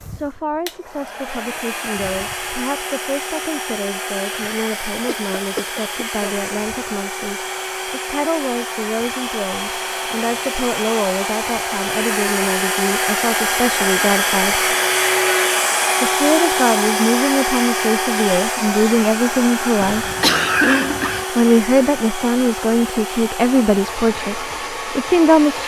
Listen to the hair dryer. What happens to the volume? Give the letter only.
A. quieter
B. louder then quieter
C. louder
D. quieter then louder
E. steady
B.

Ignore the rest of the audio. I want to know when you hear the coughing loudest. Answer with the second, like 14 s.
21 s.